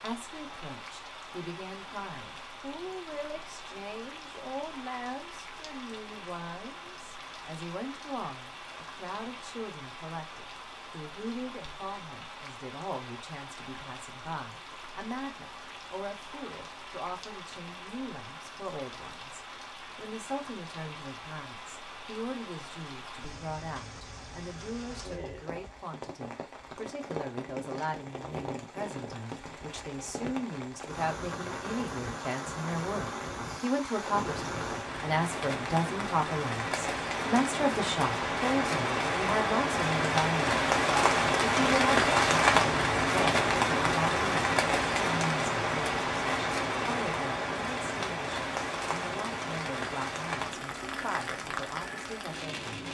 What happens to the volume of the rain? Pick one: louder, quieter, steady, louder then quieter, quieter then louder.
louder.